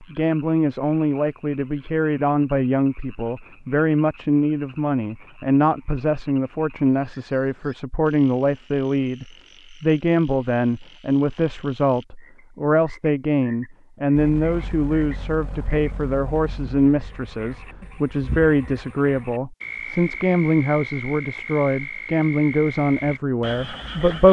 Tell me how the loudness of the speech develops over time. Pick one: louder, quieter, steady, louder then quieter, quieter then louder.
steady.